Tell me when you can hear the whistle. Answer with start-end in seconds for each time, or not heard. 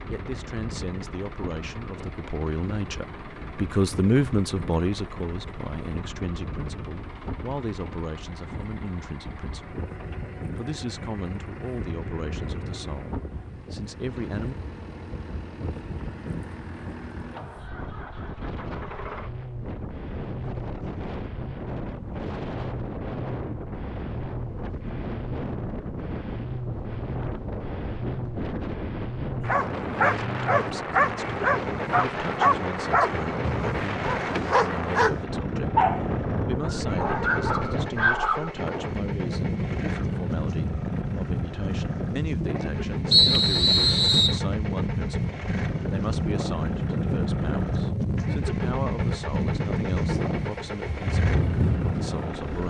43.1-44.4.